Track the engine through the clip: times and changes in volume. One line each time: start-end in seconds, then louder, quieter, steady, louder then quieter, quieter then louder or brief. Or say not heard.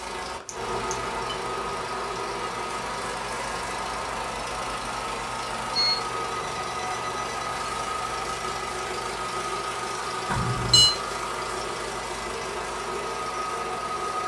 0.0-14.2 steady.